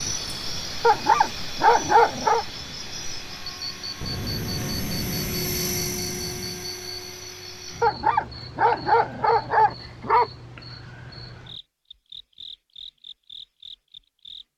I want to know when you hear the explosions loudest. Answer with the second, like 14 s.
5 s.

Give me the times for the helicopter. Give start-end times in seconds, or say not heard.
3.0-7.8.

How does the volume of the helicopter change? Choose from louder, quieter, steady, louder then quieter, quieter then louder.
louder then quieter.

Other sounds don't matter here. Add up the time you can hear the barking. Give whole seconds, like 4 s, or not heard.
4 s.